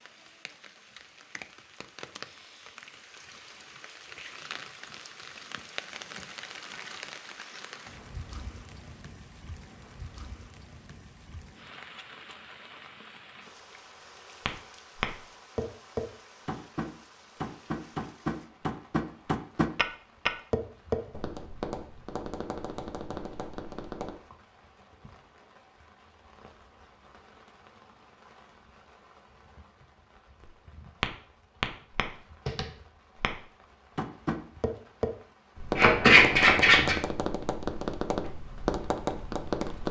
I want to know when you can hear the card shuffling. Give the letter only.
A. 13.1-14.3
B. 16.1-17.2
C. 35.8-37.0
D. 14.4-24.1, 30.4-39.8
C.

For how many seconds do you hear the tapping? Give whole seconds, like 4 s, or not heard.
19 s.